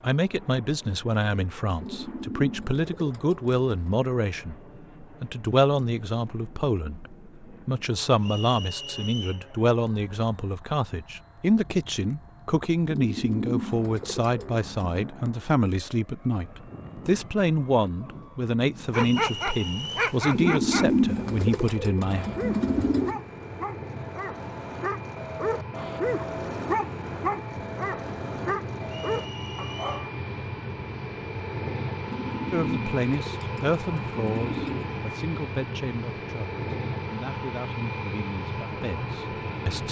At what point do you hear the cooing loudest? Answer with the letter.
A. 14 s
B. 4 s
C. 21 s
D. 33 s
C.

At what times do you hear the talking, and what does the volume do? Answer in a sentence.
The talking can be heard from 0.0 to 22.2 s, at a steady volume; and from 32.5 to 39.8 s, getting quieter.